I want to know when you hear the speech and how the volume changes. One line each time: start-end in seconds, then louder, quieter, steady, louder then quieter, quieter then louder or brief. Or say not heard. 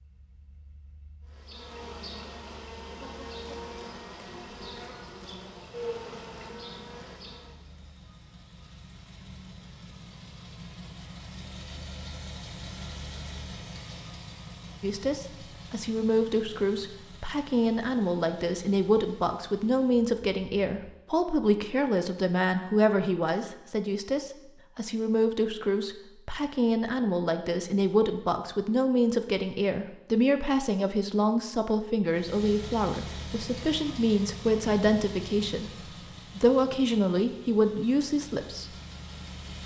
14.8-38.6 steady.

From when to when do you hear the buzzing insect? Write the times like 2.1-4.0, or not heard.
1.2-7.6.